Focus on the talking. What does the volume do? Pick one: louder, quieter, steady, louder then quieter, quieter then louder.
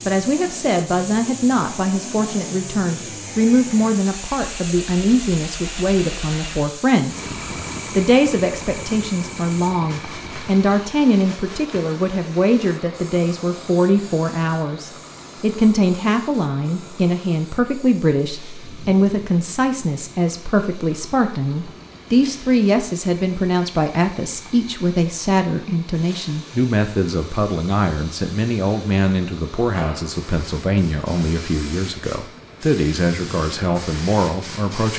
steady.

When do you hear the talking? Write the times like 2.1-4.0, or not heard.
0.1-7.2, 8.0-34.9.